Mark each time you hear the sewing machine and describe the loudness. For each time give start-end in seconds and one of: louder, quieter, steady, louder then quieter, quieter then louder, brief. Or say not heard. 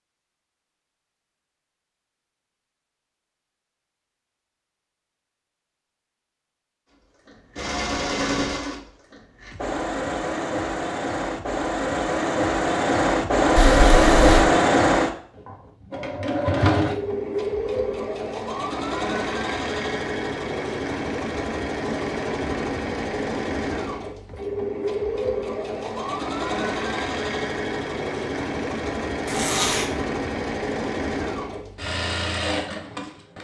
7.2-33.3 louder then quieter.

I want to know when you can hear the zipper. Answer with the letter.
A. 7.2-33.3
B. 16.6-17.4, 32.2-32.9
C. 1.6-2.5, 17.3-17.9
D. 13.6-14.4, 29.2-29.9
D.